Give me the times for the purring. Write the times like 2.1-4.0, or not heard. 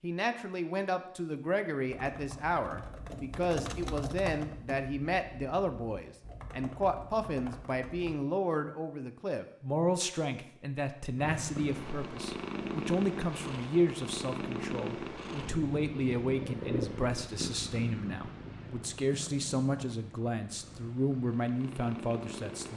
11.2-22.7.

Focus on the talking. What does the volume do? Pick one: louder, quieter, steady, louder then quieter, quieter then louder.
steady.